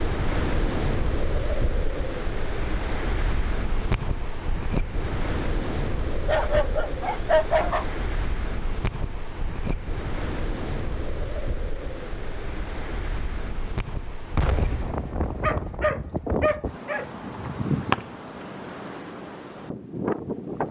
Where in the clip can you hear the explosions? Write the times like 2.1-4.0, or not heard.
14.3-15.8.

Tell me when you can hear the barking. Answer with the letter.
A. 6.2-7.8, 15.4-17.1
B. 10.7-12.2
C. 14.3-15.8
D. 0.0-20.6
A.